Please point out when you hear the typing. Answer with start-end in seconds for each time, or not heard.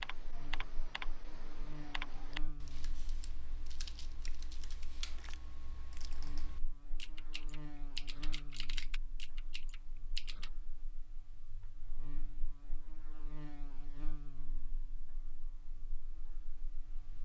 0.0-10.5.